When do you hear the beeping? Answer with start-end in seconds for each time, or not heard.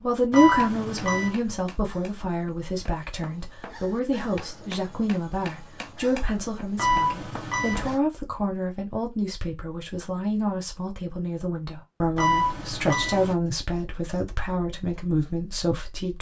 0.3-1.4, 6.8-8.0, 12.2-13.3.